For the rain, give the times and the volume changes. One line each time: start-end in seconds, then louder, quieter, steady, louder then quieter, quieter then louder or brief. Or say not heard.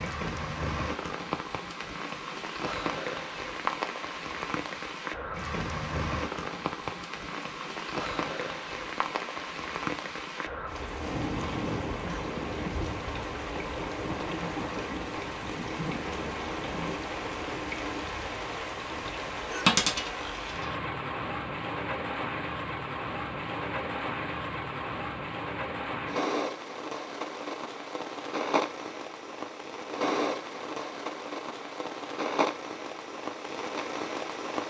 0.0-34.6 steady.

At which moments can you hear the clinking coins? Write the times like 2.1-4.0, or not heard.
19.6-20.8.